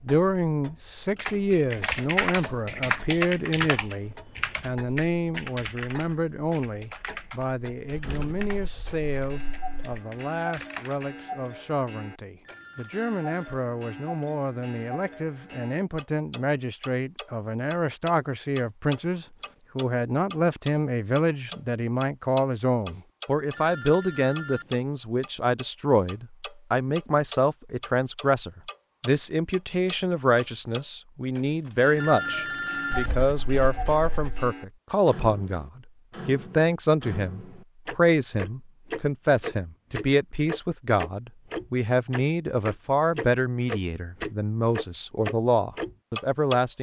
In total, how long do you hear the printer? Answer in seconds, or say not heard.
not heard.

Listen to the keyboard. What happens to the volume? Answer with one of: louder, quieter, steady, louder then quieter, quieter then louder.
quieter.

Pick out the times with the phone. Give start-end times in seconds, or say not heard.
12.4-13.7, 23.5-24.8, 31.9-33.1.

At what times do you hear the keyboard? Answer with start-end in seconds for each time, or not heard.
1.1-11.1.